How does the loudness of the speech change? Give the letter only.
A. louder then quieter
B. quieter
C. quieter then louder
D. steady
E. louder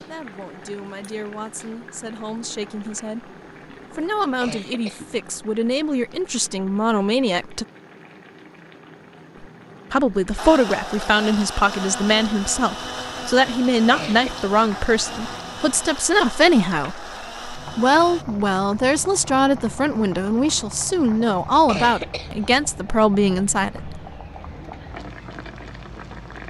E.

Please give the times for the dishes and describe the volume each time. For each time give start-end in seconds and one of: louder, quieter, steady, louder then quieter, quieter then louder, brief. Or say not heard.
not heard.